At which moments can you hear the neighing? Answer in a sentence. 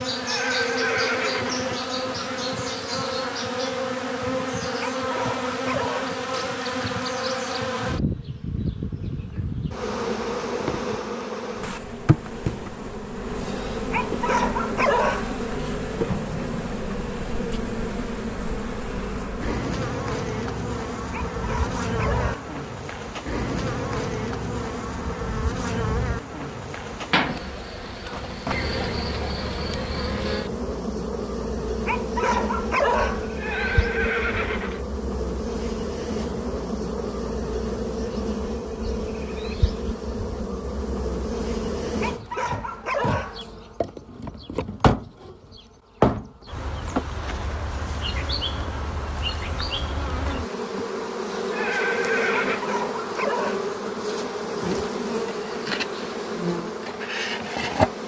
You can hear the neighing from 0.1 to 2.2 s, from 33.2 to 34.9 s and from 51.5 to 52.6 s.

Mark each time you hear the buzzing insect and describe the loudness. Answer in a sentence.
The buzzing insect can be heard from 0.0 to 58.0 s, at a steady volume.